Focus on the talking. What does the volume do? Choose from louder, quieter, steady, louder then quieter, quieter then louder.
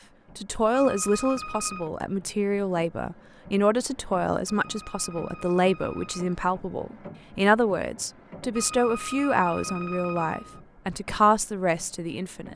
steady.